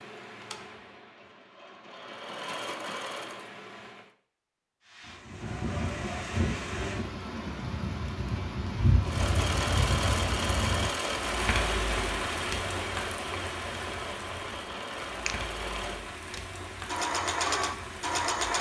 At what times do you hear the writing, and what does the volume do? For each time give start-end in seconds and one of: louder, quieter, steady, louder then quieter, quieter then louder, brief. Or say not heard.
not heard.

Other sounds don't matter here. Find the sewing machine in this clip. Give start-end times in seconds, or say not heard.
0.0-4.1, 9.1-18.5.